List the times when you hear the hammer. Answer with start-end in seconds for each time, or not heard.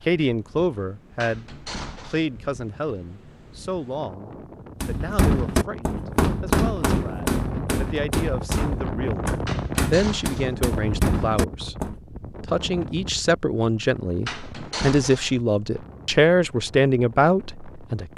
4.8-11.9.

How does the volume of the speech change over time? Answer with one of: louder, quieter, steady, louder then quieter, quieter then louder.
quieter then louder.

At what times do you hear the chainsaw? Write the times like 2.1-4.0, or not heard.
not heard.